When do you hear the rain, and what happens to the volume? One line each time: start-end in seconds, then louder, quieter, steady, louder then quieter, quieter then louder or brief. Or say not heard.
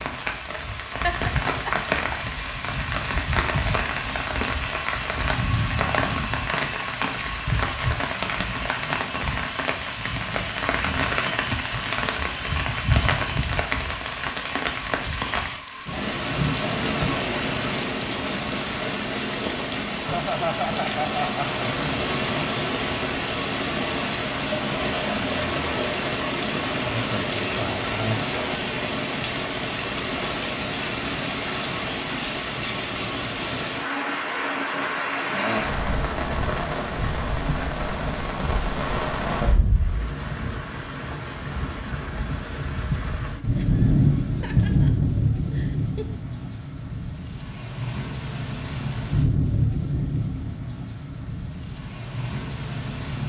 0.0-53.2 steady.